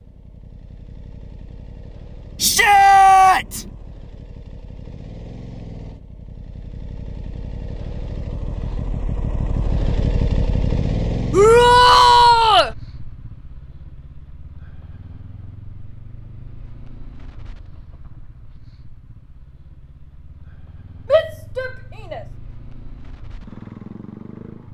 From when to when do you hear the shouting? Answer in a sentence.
The shouting can be heard from 2.4 to 3.6 s, from 11.3 to 12.7 s and from 21.1 to 22.2 s.